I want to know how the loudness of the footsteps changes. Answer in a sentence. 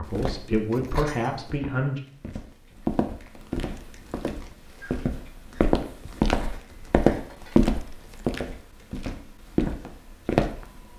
The volume of the footsteps goes up.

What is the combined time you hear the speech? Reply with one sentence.
The speech can be heard for 2 seconds in total.